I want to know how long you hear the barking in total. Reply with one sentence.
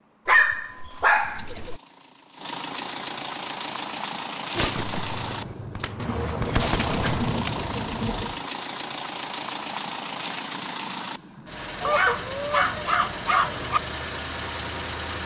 You can hear the barking for 6 seconds altogether.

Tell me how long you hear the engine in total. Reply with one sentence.
The engine can be heard for 15 seconds in total.